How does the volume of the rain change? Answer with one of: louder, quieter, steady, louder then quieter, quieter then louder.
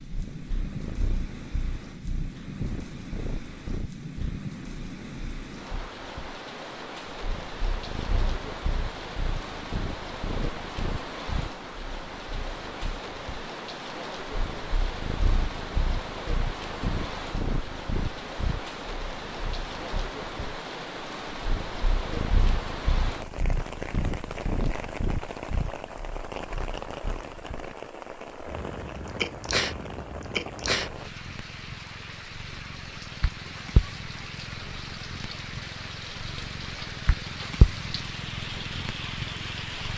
steady.